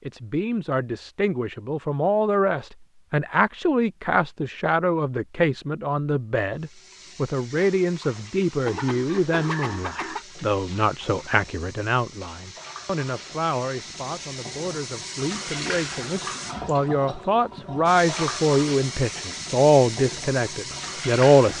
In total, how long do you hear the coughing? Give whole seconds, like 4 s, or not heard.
2 s.